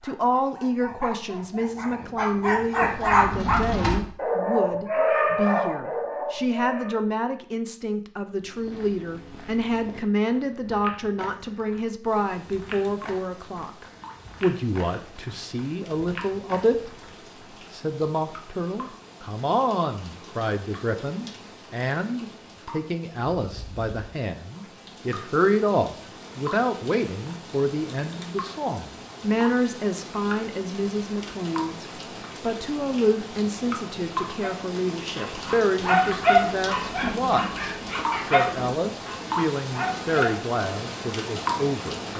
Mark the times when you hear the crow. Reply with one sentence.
The crow can't be heard in this clip.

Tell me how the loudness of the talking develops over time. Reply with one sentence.
The loudness of the talking stays about the same.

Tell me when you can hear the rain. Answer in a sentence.
You can hear the rain from 12.0 to 42.1 s.